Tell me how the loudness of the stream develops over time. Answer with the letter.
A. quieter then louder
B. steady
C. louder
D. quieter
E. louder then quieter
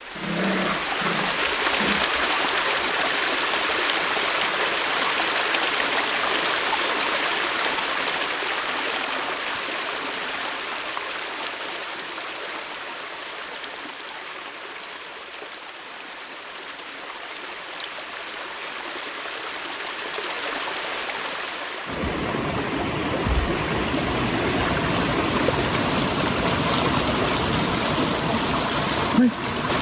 A.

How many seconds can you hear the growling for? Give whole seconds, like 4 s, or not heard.
2 s.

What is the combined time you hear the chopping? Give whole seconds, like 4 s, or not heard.
not heard.